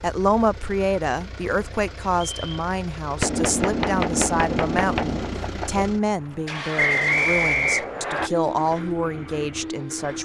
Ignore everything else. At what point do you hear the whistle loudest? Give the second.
7 s.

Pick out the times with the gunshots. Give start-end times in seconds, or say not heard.
3.2-5.8.